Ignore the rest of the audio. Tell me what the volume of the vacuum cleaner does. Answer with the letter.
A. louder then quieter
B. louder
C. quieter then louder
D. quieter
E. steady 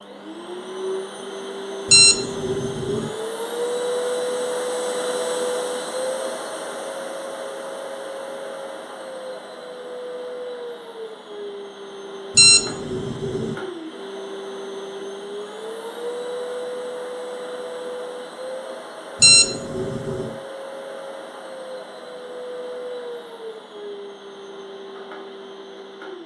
D.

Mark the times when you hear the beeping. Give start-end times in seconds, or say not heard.
1.9-3.1, 12.3-13.6, 19.2-20.4.